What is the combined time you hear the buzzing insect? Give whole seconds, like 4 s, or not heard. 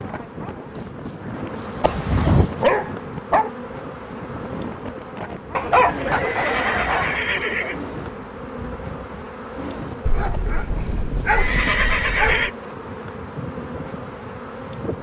15 s.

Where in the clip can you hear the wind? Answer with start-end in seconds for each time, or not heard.
0.0-14.9.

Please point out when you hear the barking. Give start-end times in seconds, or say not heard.
1.6-3.5, 5.5-7.2, 10.1-12.5.